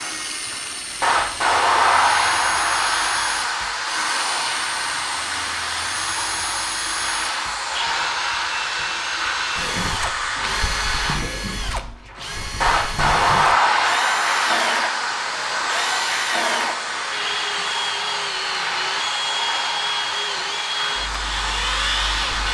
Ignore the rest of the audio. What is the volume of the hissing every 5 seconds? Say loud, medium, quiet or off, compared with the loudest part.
loud, medium, loud, medium, medium.